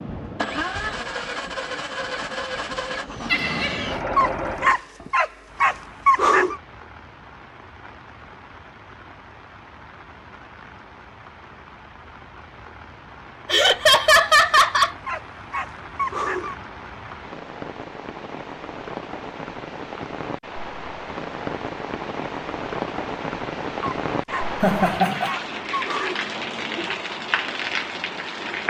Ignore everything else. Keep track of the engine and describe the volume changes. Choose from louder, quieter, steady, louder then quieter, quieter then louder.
steady.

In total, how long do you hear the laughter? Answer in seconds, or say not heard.
3 s.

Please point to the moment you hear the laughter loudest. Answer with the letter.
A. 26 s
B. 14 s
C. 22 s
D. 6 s
B.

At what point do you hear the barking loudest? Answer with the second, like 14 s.
6 s.